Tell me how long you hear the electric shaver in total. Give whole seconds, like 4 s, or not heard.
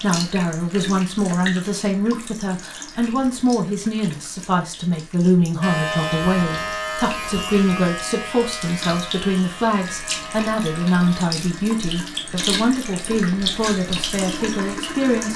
6 s.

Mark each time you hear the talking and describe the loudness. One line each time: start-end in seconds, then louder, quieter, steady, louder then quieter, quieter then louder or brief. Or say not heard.
0.0-15.3 steady.